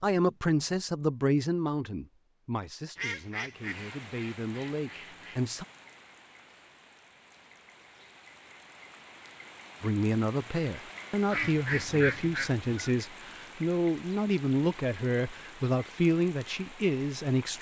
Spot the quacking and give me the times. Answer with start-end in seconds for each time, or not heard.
3.0-5.4, 11.2-12.9.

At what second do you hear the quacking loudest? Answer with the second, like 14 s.
12 s.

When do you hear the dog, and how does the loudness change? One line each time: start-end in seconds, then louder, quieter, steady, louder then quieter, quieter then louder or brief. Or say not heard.
not heard.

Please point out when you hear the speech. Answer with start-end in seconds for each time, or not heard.
0.0-5.7, 9.8-17.5.